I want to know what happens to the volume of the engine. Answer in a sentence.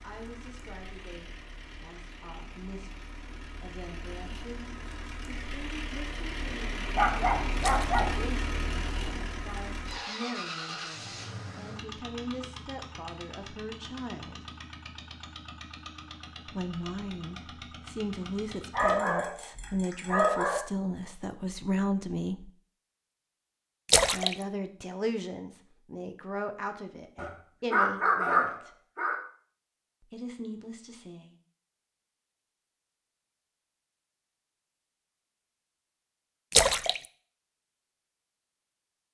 The volume of the engine goes up, then down.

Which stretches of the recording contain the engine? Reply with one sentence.
The engine can be heard from 0.0 to 19.0 s.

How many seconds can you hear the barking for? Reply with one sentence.
The barking can be heard for 5 seconds in total.